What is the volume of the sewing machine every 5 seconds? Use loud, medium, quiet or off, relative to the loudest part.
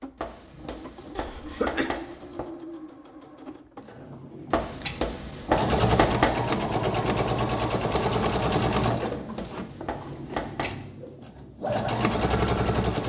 quiet, loud, loud.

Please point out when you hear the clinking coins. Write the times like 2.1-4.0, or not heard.
not heard.